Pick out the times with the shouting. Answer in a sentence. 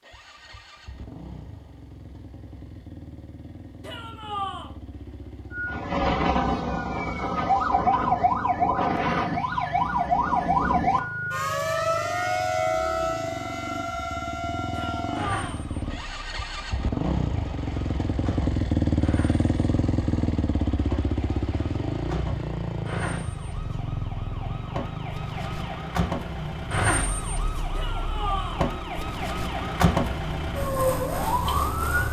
The shouting can be heard from 3.8 to 4.8 s, from 14.7 to 15.7 s and from 27.8 to 28.6 s.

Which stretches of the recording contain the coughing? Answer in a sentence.
The coughing can't be heard in this clip.